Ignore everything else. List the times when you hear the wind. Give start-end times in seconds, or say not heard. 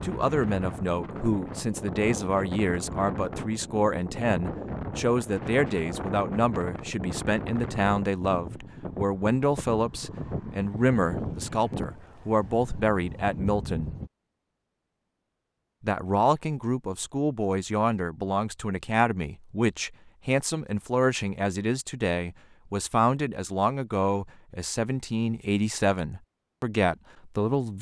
0.0-14.1.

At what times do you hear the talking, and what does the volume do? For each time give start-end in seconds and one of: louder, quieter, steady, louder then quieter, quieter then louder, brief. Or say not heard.
0.0-13.9 steady
15.8-27.7 steady.